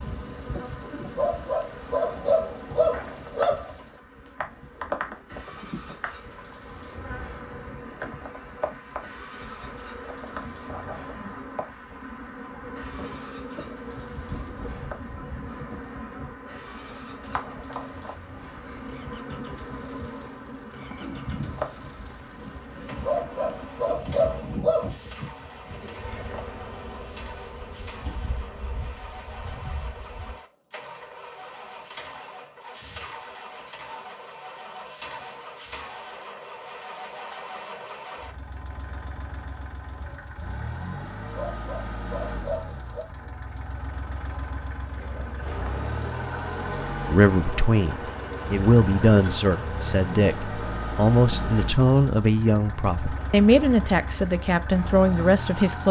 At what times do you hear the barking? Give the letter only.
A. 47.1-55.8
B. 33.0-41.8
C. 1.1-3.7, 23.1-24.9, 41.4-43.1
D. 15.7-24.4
C.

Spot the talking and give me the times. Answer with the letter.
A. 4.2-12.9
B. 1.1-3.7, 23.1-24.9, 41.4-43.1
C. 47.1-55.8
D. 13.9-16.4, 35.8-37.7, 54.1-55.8
C.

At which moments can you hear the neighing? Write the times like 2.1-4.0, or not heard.
not heard.